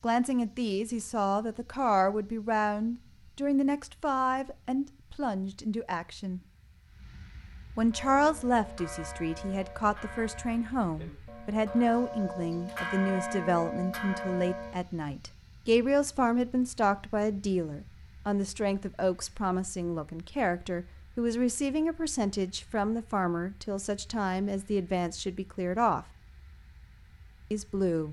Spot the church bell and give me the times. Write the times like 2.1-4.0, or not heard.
7.9-14.8.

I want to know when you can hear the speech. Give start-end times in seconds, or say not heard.
0.0-6.4, 7.8-26.1, 27.5-28.0.